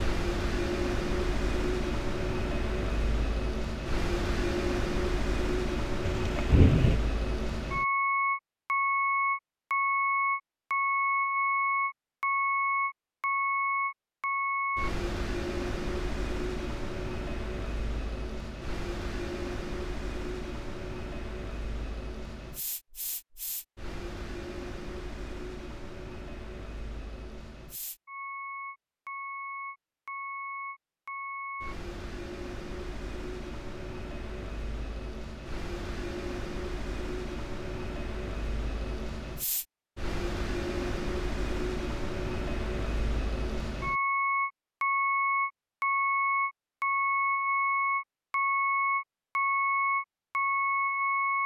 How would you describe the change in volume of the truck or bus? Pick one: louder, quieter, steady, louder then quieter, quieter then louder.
quieter then louder.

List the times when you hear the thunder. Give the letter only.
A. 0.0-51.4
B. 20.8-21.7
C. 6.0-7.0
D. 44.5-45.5
C.